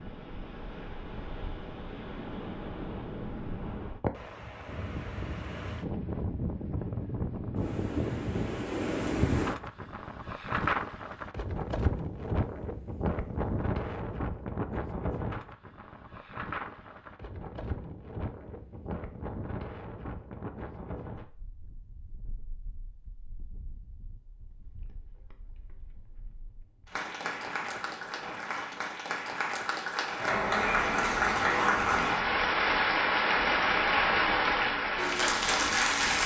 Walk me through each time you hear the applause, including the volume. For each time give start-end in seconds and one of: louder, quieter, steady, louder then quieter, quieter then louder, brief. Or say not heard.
26.9-36.2 louder.